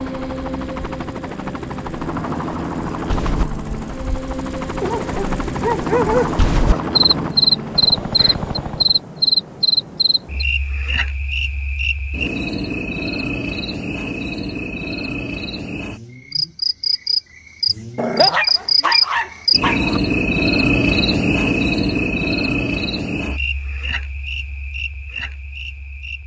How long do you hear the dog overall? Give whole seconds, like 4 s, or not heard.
4 s.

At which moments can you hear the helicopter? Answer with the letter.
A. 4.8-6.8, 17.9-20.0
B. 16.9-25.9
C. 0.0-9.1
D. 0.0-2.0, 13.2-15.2
C.